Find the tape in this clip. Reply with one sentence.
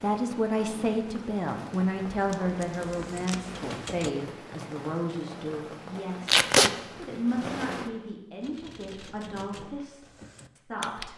The tape can be heard from 2.1 to 3.6 s and from 6.2 to 6.7 s.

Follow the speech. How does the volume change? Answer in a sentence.
The loudness of the speech goes down.